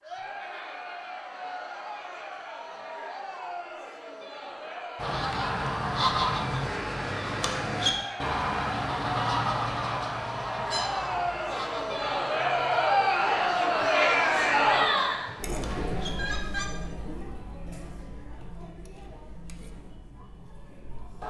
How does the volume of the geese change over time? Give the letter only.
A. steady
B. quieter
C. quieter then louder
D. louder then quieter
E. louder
B.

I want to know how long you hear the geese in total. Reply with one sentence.
The geese can be heard for 12 seconds in total.